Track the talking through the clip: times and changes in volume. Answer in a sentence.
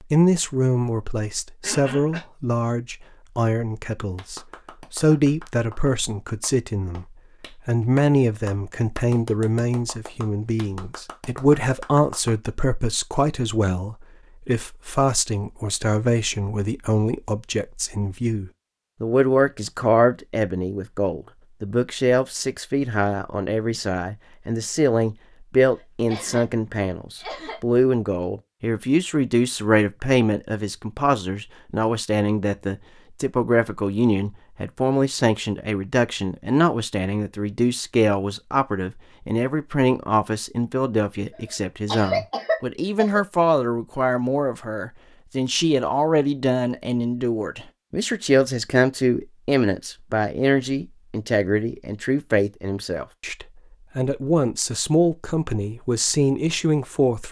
The talking can be heard from 0.0 to 57.2 s, at a steady volume.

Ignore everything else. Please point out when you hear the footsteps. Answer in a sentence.
The footsteps can't be heard in this clip.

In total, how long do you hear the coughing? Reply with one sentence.
The coughing can be heard for 4 seconds in total.